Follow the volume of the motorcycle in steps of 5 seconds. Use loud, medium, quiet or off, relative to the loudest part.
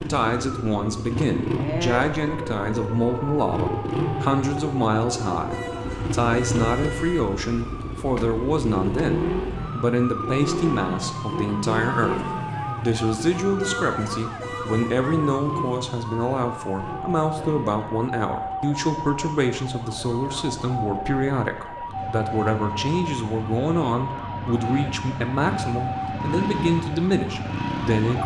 loud, loud, loud, medium, medium, loud.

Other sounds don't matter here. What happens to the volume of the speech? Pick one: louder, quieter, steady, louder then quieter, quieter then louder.
steady.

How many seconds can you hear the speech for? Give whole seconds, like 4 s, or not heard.
28 s.